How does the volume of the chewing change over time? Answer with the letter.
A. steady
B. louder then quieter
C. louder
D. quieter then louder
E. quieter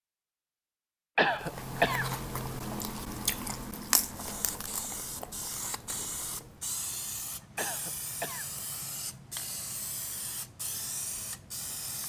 E.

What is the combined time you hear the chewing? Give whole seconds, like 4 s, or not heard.
5 s.